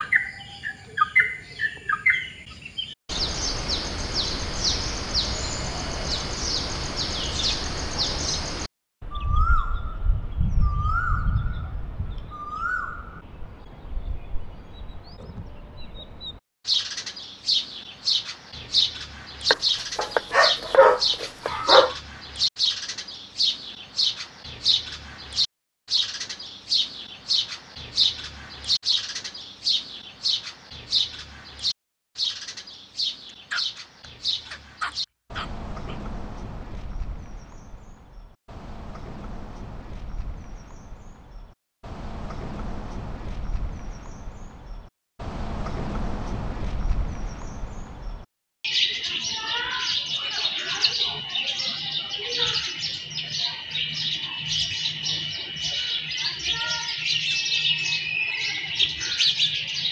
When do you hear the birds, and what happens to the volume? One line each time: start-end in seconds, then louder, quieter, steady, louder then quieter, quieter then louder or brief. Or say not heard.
0.0-59.8 quieter then louder.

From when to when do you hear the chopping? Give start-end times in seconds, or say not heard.
19.5-21.6.